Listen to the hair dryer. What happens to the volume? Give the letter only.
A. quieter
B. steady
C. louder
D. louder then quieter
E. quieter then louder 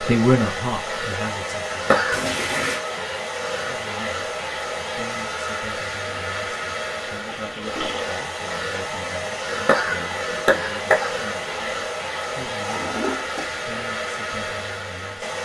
B.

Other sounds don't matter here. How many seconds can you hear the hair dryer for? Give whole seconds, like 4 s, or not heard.
15 s.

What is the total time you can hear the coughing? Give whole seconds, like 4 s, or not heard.
2 s.